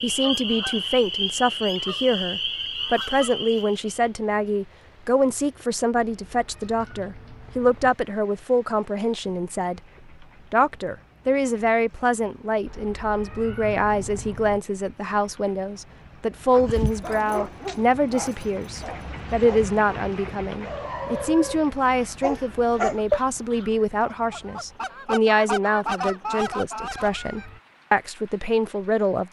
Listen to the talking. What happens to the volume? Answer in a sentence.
The volume of the talking stays about the same.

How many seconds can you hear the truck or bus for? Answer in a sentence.
The truck or bus can't be heard in this clip.